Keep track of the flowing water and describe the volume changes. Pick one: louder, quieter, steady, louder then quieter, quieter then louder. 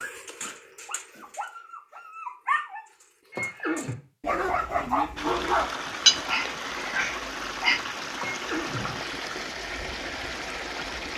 steady.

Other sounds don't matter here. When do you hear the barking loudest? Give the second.
6 s.